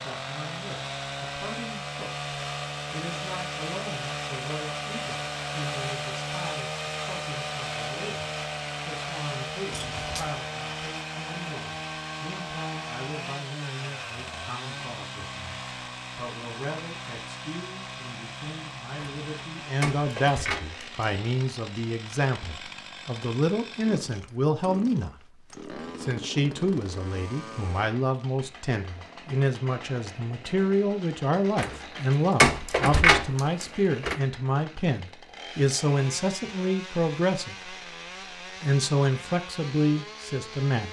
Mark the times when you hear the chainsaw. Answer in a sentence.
You can hear the chainsaw from 0.0 to 40.8 s.